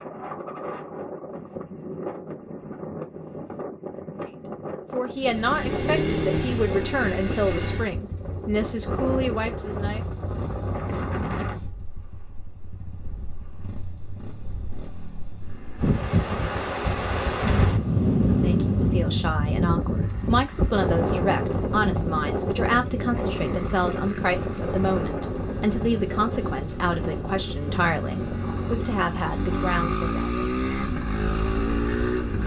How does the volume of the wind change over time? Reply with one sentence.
The volume of the wind goes up, then down.